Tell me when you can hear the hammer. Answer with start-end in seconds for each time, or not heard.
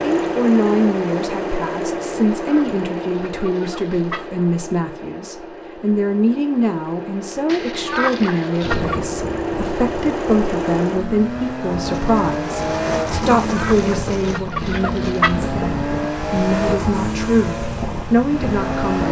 not heard.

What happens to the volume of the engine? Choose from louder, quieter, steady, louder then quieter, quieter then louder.
quieter then louder.